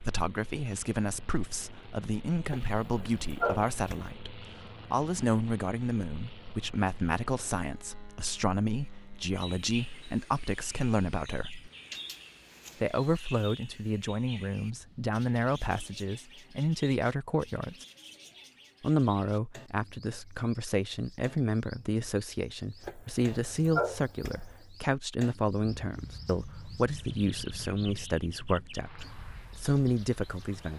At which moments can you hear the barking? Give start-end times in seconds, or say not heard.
2.5-4.1, 22.9-24.6.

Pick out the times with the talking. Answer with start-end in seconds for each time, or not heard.
0.0-11.7, 12.8-17.9, 18.8-30.7.